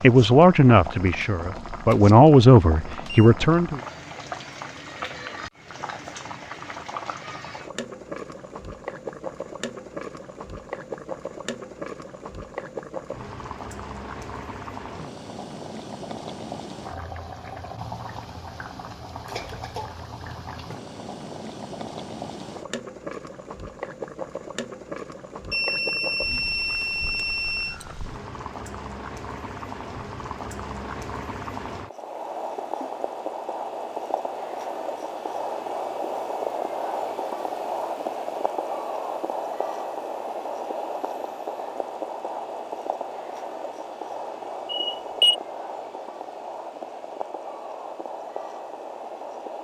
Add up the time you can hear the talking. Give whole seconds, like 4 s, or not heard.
4 s.